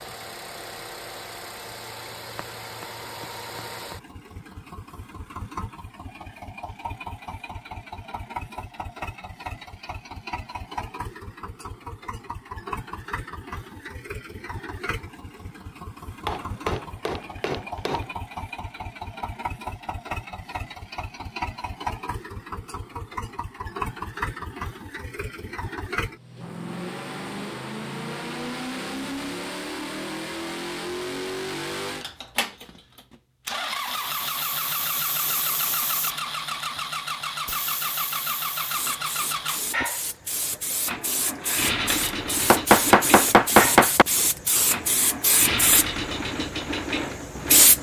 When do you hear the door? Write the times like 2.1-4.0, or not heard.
not heard.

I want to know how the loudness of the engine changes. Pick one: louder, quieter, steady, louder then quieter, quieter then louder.
louder.